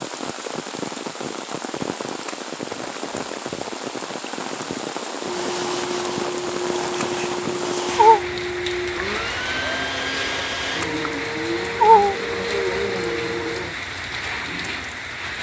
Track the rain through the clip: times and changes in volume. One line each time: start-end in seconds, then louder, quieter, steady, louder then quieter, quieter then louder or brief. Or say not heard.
0.0-15.3 steady.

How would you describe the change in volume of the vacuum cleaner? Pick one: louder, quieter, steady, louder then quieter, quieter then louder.
steady.